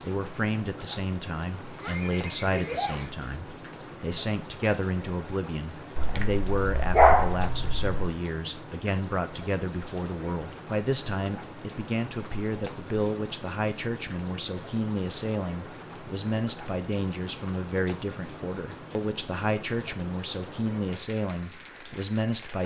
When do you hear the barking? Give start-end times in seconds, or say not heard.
6.0-8.1.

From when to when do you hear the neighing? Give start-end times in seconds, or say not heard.
1.8-3.1.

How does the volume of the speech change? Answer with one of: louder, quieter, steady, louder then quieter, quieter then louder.
steady.